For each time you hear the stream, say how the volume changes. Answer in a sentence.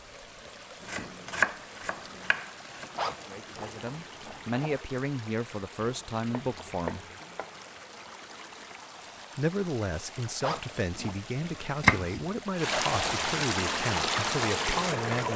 The stream can be heard from 0.0 to 15.3 s, getting louder.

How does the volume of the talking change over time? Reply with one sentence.
The volume of the talking stays about the same.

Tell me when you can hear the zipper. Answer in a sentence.
You can hear the zipper from 3.0 to 4.8 s and from 10.4 to 11.2 s.